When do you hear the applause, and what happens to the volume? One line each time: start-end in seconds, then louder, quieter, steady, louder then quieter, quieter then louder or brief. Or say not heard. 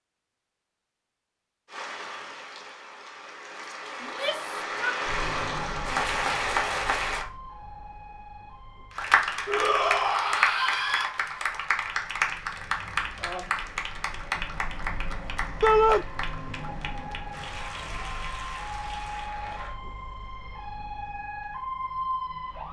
1.6-7.2 louder
8.9-19.8 quieter.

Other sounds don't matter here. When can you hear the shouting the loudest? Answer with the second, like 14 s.
16 s.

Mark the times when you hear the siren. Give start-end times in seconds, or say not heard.
5.0-22.6.